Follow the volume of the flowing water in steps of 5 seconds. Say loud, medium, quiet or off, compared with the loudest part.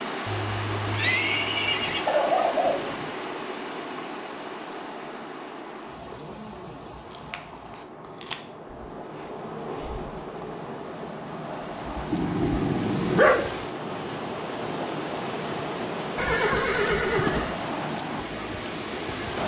loud, medium, loud, loud.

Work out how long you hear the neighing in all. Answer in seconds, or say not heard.
3 s.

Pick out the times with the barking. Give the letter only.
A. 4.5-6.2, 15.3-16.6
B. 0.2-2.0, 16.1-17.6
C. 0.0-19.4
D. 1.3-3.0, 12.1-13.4
D.